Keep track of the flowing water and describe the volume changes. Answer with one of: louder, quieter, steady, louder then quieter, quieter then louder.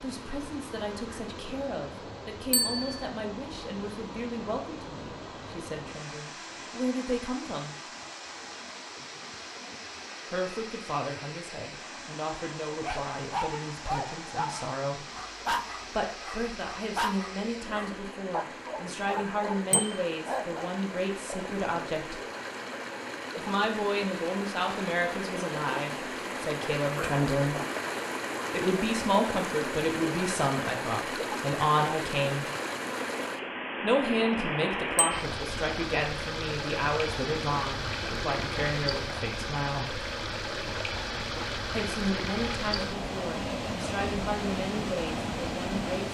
louder.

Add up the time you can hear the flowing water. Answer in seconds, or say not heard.
46 s.